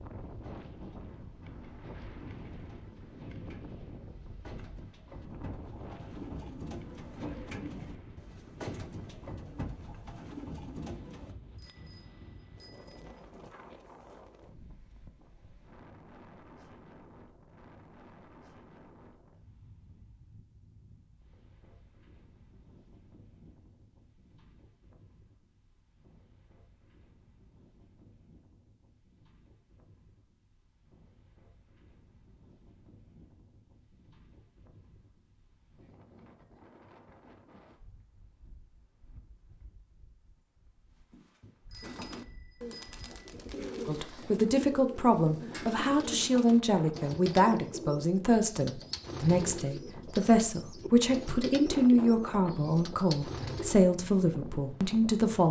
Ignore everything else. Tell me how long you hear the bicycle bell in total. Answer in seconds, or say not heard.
3 s.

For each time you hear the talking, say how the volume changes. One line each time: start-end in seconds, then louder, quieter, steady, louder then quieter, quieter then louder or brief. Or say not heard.
43.9-55.4 steady.